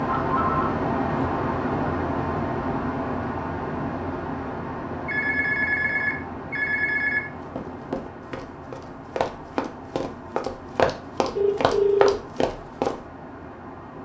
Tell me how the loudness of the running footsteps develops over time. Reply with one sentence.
The volume of the running footsteps goes up.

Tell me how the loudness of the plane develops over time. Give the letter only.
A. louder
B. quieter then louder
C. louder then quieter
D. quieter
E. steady
D.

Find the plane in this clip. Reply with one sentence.
You can hear the plane from 0.0 to 14.0 s.